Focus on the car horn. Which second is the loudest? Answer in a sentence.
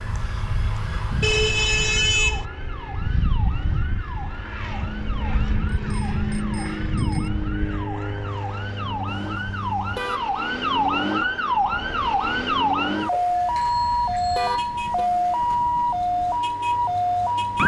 The loudest moment of the car horn is at 2 seconds.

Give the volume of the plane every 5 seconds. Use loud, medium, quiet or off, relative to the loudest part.
loud, loud, quiet, quiet.